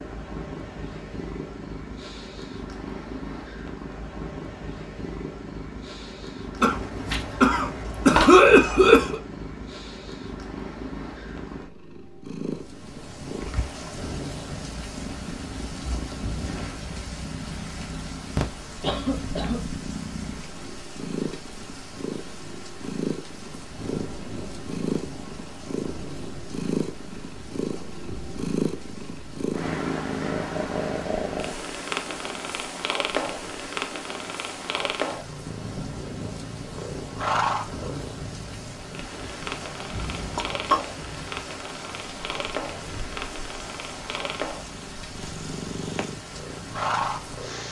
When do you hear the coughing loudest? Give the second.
8 s.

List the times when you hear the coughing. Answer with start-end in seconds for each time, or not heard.
6.6-9.2, 18.4-19.6, 40.4-40.8.